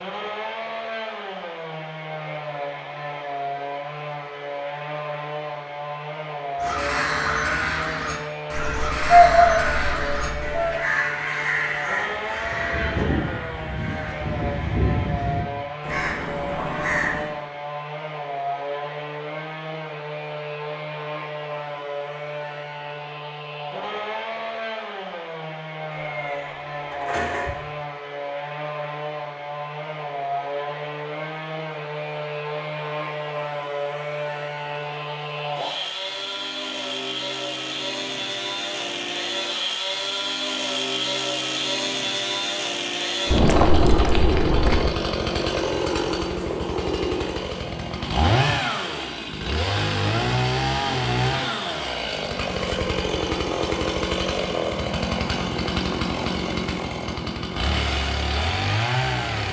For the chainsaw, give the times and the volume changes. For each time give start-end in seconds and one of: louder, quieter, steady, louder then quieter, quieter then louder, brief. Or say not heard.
0.0-59.4 louder.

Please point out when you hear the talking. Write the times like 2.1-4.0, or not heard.
not heard.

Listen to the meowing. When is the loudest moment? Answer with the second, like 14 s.
9 s.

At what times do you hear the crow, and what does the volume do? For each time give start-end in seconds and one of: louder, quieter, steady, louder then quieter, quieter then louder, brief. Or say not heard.
6.5-17.3 steady.